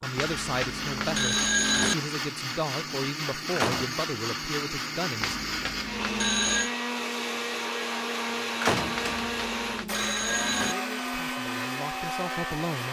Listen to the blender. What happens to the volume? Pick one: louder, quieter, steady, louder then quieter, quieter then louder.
steady.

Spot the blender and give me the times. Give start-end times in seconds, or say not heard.
0.0-12.8.